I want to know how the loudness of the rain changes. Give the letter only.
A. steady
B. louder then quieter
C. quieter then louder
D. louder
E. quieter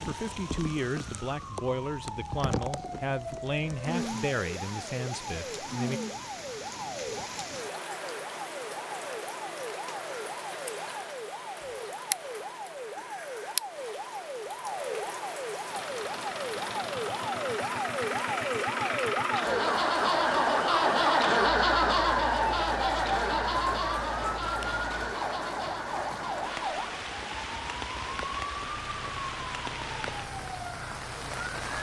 A.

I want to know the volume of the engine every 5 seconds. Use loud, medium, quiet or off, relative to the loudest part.
off, off, off, medium, loud, quiet, quiet.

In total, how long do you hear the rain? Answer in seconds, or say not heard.
32 s.